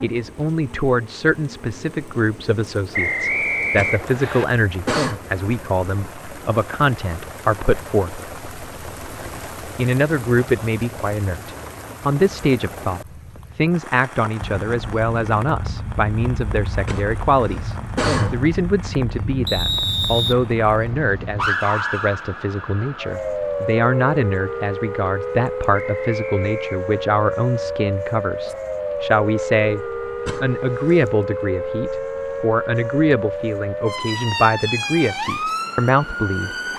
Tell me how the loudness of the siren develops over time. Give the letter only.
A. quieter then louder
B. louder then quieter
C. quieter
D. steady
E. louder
E.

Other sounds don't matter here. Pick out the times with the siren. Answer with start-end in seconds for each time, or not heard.
14.3-36.7.